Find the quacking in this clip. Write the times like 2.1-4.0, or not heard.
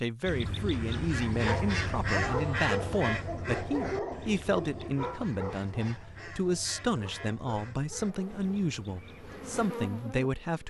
0.2-9.7.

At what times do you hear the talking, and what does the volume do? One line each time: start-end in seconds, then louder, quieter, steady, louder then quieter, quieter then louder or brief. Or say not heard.
0.0-10.6 steady.